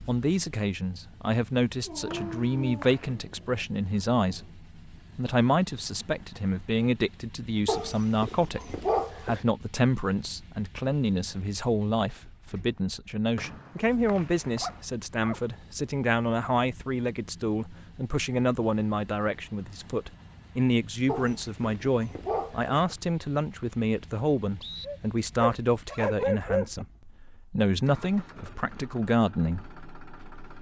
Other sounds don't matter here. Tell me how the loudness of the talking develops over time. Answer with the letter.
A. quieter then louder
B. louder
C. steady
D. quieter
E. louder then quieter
C.